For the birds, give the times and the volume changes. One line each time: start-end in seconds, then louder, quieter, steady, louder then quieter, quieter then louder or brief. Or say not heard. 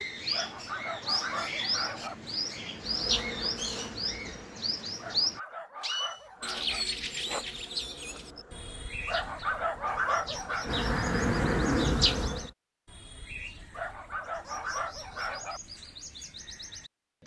0.0-17.2 quieter.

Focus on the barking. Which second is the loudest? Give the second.
10 s.